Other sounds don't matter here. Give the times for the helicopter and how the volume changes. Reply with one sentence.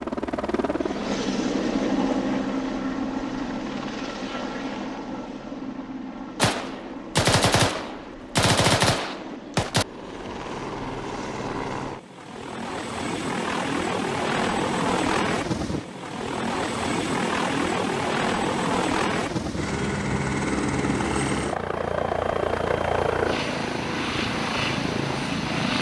You can hear the helicopter from 0.0 to 25.7 s, getting quieter then louder.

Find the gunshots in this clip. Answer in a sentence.
You can hear the gunshots from 6.3 to 9.8 s.